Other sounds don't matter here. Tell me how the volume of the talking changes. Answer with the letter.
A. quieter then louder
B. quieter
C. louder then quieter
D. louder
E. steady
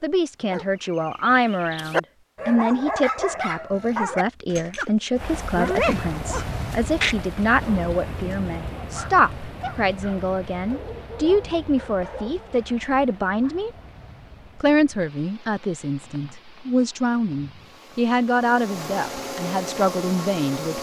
E.